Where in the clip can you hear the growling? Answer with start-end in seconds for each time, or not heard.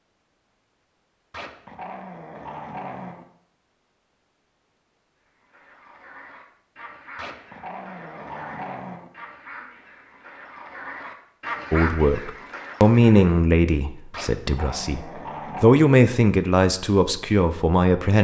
1.3-3.2, 7.2-9.1, 14.1-15.8.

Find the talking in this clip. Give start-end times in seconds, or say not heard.
11.7-18.1.